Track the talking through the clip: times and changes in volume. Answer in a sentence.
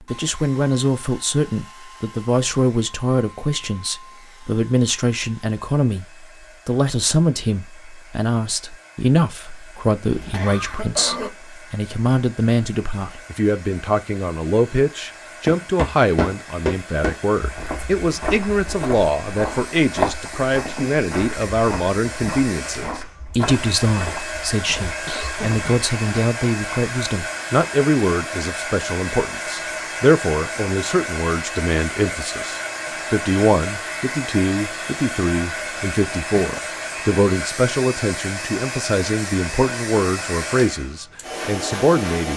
You can hear the talking from 0.1 to 42.3 s, at a steady volume.